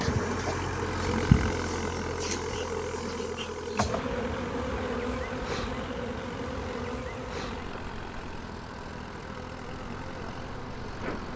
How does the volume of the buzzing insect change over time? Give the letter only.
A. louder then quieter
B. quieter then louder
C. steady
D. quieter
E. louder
D.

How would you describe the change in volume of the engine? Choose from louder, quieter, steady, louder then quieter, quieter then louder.
quieter.